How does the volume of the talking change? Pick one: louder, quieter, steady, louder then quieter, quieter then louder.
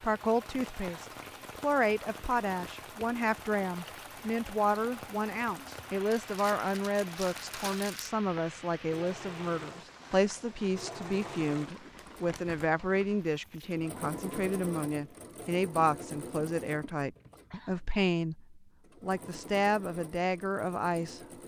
steady.